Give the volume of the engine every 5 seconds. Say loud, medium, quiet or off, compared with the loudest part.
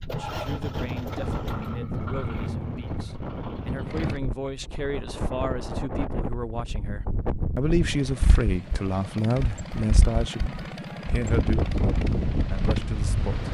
loud, medium, loud.